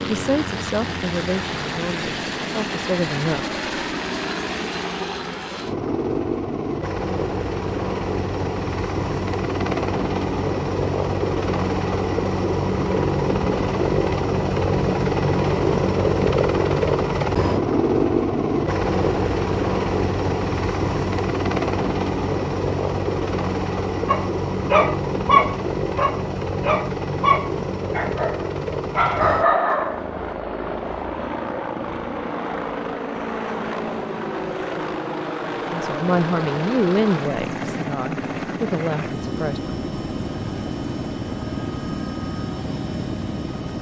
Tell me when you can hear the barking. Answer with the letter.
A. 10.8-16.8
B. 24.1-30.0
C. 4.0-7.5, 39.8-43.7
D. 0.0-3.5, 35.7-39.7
B.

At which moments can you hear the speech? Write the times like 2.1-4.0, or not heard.
0.0-3.5, 35.7-39.7.